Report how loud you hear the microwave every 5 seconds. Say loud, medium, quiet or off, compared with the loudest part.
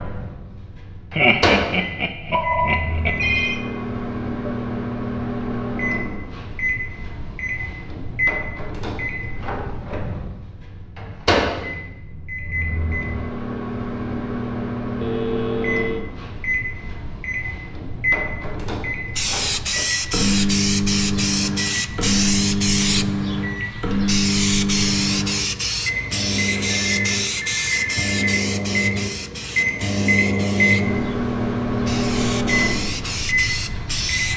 medium, medium, medium, medium, loud, loud, loud.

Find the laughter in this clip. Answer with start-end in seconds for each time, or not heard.
1.1-3.1.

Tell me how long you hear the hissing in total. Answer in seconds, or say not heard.
15 s.